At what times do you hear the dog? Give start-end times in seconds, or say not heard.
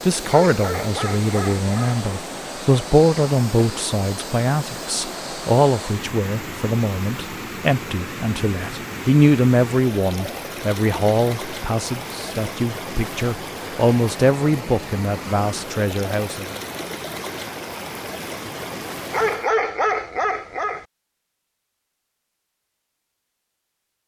0.3-2.0, 19.1-20.9.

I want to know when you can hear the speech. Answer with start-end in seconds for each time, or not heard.
0.0-16.6.